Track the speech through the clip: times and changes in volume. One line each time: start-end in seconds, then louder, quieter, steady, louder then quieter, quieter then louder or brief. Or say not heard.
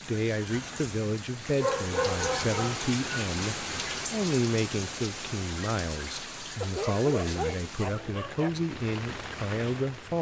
0.1-10.1 steady.